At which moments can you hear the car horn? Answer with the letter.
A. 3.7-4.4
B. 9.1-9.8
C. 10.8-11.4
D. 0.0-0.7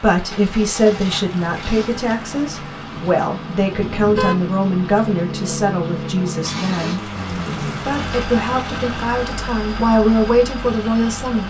A.